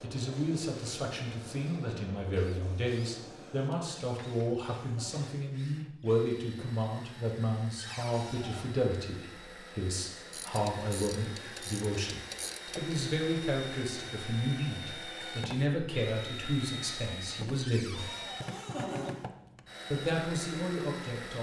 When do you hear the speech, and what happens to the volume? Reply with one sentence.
The speech can be heard from 0.0 to 18.1 s, at a steady volume; and briefly from 19.9 to 21.3 s.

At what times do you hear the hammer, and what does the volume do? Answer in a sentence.
The hammer can't be heard in this clip.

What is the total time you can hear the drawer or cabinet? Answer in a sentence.
You can hear the drawer or cabinet for 4 seconds altogether.